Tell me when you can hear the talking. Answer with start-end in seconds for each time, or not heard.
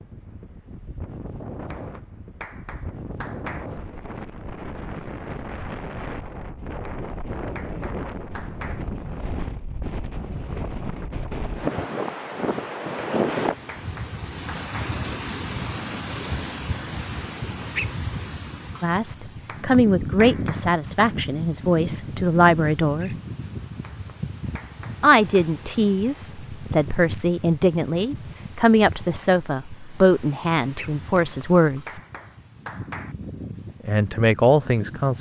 18.8-23.1, 25.0-32.0, 33.9-35.1.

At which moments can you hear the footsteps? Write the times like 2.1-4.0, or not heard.
not heard.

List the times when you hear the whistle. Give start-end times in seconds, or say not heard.
not heard.